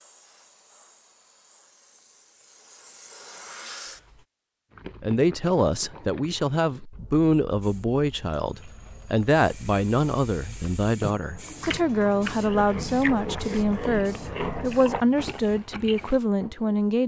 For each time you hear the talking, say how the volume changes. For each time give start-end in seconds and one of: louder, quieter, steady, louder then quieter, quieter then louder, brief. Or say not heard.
5.0-17.0 steady.